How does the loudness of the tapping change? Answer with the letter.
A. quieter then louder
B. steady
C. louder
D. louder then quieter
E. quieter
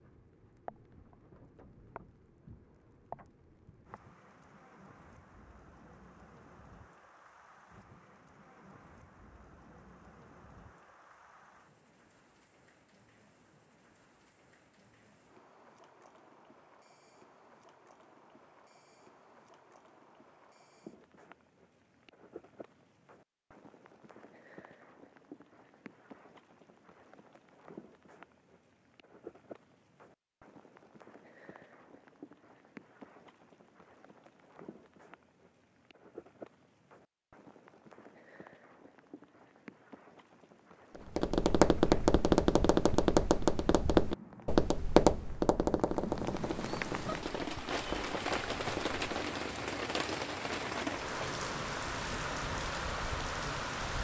E.